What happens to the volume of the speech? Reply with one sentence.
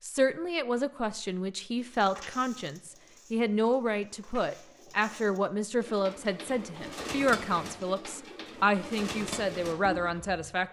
The volume of the speech stays about the same.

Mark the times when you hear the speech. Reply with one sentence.
You can hear the speech from 0.0 to 10.6 s.